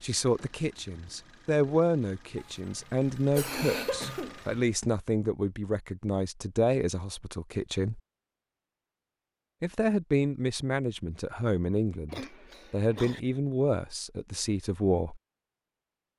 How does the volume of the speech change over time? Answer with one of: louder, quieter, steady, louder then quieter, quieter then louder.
steady.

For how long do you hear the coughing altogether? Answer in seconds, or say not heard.
3 s.